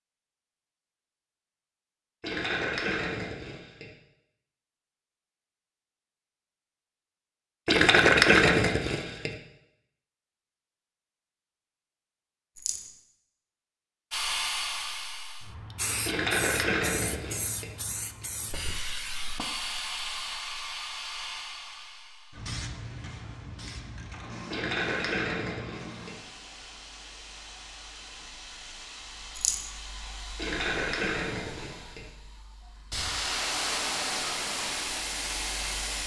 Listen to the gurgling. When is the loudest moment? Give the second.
8 s.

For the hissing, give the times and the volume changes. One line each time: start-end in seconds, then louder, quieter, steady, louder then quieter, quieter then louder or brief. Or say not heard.
14.1-36.0 quieter then louder.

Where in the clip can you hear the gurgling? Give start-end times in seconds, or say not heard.
2.2-3.9, 7.7-9.3, 16.1-17.8, 24.5-26.2, 30.4-32.0.